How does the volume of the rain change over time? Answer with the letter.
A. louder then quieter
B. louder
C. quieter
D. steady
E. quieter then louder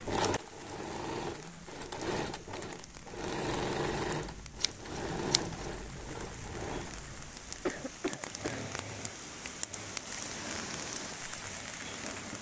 B.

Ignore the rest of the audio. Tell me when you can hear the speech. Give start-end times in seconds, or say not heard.
not heard.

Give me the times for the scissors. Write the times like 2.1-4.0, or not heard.
4.6-5.6.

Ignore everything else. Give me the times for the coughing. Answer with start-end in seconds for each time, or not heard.
7.7-8.6.